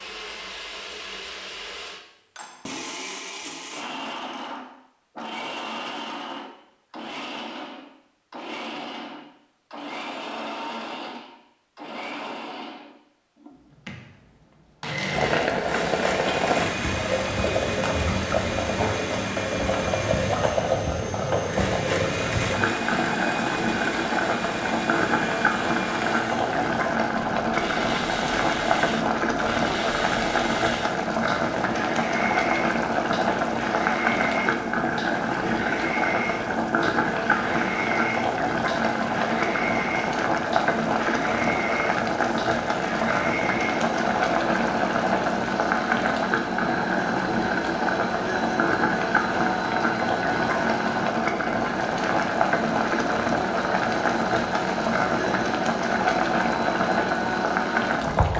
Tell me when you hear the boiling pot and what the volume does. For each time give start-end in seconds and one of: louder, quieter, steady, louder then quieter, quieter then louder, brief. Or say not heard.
15.1-58.3 steady.